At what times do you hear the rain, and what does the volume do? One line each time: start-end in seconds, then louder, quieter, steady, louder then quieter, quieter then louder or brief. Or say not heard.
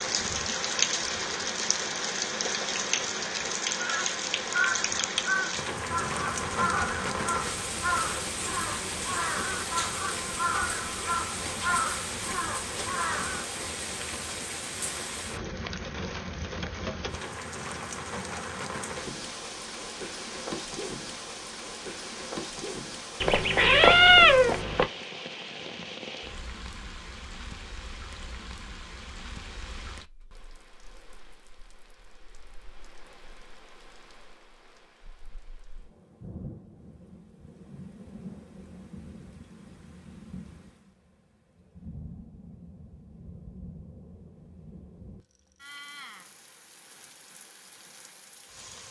0.0-48.8 quieter.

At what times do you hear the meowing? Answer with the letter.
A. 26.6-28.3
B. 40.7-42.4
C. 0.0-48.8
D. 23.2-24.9
D.